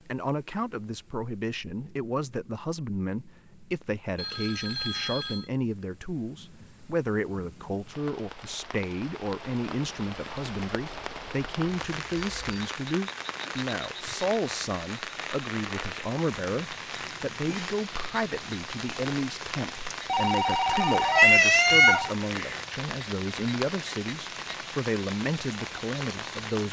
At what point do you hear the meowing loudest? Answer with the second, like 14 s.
21 s.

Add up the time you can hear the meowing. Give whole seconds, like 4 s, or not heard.
2 s.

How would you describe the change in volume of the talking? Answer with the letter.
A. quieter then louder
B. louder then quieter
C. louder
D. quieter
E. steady
E.